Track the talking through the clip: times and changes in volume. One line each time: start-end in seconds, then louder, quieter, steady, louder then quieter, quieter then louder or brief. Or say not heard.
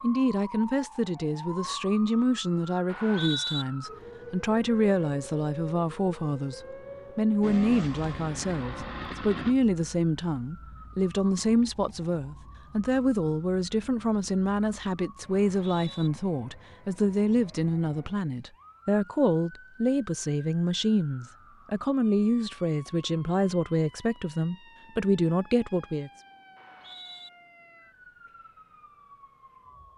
0.0-26.1 steady.